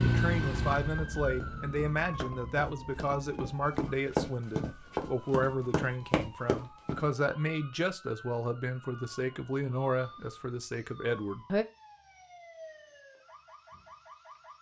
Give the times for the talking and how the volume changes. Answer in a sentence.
The talking can be heard from 0.0 to 11.7 s, at a steady volume.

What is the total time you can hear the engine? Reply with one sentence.
You can hear the engine for 2 seconds altogether.